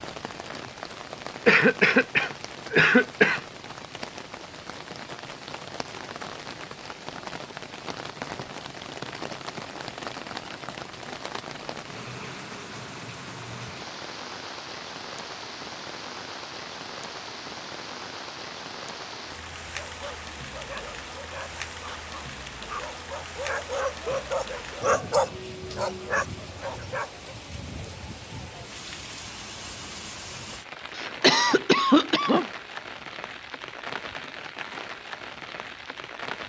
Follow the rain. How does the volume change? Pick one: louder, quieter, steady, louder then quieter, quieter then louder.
steady.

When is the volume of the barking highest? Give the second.
25 s.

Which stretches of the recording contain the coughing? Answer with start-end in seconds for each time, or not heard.
1.4-3.4, 30.9-32.5.